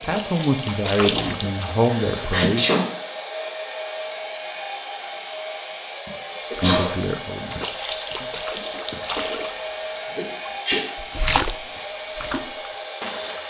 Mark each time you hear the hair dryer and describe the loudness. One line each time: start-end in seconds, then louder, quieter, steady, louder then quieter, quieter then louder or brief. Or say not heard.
0.0-13.4 steady.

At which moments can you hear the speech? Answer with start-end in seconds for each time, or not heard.
0.0-2.6, 6.6-8.3.